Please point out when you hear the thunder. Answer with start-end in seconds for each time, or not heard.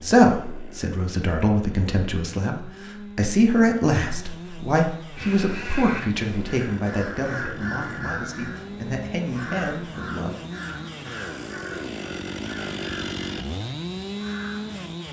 not heard.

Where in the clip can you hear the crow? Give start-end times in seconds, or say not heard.
5.2-14.8.